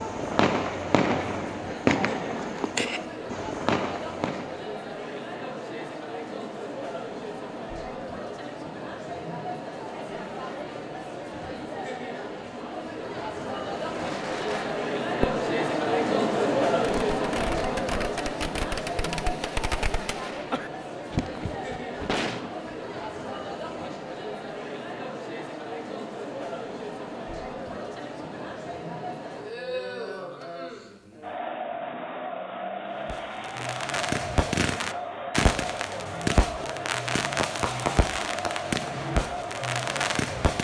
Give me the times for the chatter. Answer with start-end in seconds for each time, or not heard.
0.0-40.5.